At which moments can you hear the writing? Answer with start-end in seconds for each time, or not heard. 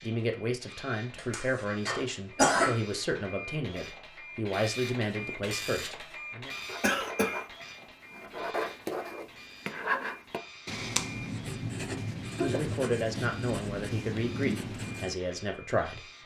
6.5-15.2.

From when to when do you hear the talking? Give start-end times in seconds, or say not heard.
0.0-6.5, 12.3-16.1.